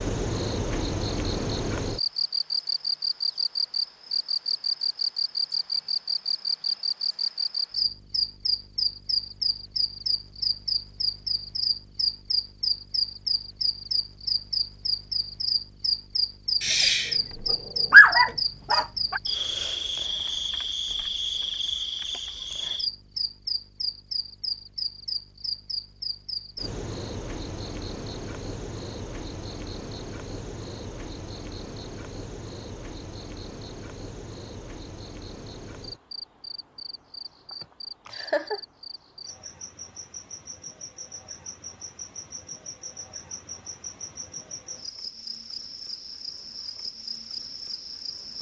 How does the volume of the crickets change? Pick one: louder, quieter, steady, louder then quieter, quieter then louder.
quieter.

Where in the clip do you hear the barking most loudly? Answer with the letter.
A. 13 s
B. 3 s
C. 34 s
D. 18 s
D.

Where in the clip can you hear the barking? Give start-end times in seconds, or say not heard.
16.6-19.2.